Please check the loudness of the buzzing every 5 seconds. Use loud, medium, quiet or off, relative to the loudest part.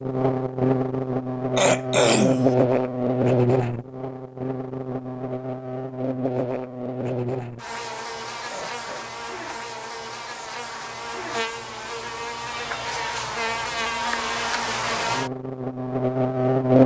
loud, medium, medium, loud.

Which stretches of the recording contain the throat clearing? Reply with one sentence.
You can hear the throat clearing from 1.6 to 2.5 s and from 8.5 to 9.1 s.